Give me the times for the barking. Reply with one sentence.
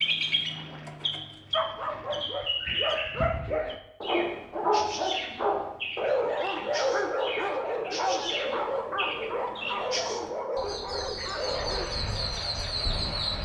You can hear the barking from 1.5 to 11.9 s.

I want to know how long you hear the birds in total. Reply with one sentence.
You can hear the birds for 13 seconds altogether.